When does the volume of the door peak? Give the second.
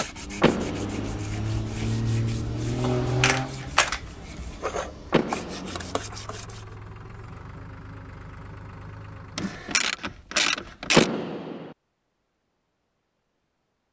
11 s.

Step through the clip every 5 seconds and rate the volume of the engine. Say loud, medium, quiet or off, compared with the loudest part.
loud, quiet, off.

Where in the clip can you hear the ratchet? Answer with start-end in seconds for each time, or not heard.
2.8-4.0, 9.3-11.1.